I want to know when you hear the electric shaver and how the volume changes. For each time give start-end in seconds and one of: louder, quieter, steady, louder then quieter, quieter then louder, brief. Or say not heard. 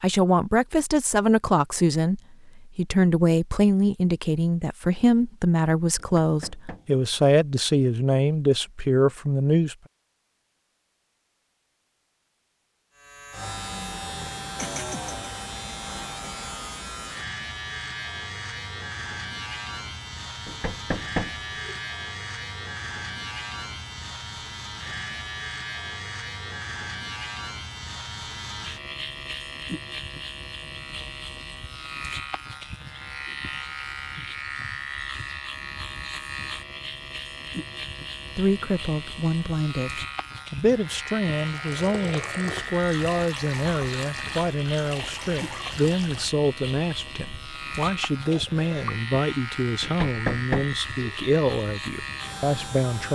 12.9-53.1 steady.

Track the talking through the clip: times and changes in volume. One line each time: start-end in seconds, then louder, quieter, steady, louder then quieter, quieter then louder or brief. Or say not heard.
0.0-9.8 steady
38.4-53.1 steady.